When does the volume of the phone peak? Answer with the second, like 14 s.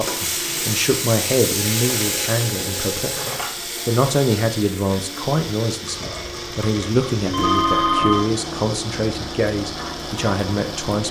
8 s.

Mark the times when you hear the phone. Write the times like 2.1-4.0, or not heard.
1.6-3.5, 7.2-8.2.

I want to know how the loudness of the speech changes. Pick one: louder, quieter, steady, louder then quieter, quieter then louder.
steady.